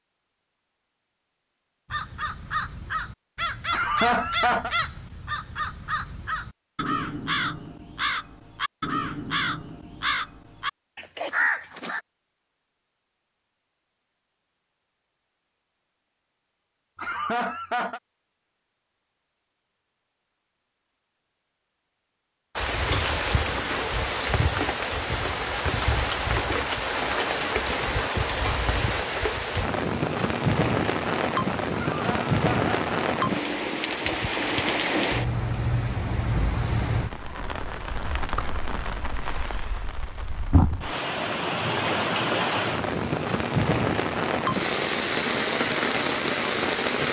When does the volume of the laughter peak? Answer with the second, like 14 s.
4 s.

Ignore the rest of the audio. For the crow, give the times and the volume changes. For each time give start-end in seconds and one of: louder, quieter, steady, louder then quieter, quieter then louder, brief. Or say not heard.
1.9-12.0 steady.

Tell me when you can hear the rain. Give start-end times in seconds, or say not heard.
22.6-47.0.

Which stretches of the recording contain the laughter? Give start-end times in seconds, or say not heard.
3.7-4.7, 16.9-18.0, 31.9-32.8.